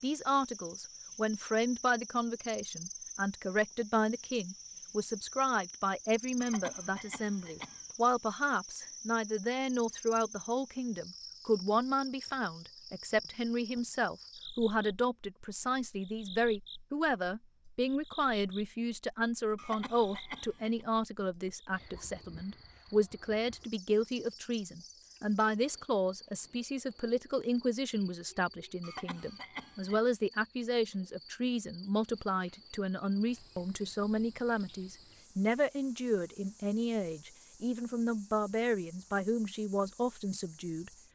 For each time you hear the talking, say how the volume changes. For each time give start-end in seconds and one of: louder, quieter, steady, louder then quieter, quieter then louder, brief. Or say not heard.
0.0-40.9 steady.